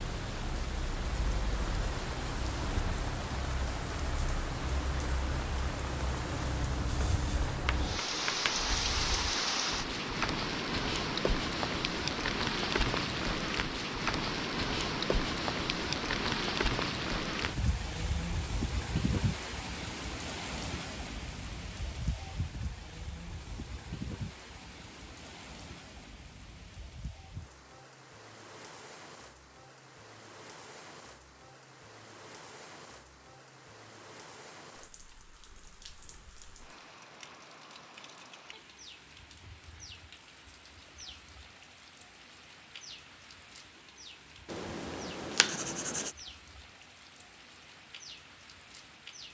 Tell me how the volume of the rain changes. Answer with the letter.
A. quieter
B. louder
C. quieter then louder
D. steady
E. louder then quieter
A.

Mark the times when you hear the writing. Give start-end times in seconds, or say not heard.
6.8-9.2, 44.5-46.1.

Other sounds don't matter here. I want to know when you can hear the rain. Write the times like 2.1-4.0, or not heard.
0.0-49.2.